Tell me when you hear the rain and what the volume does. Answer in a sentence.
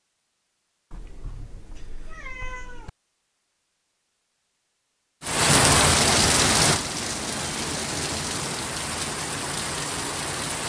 The rain can be heard from 5.2 to 10.6 s, getting quieter.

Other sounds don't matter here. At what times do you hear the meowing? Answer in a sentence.
The meowing can be heard from 0.9 to 2.9 s and from 7.0 to 8.8 s.